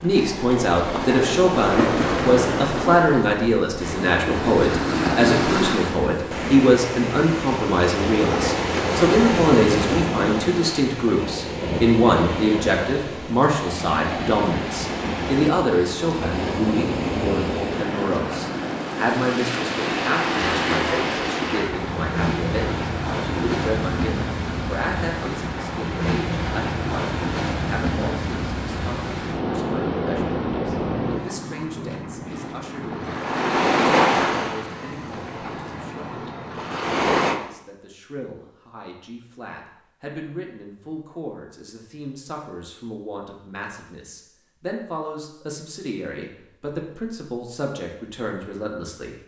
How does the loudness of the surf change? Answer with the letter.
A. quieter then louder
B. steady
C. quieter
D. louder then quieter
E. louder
B.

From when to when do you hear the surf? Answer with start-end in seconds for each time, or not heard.
0.0-37.4.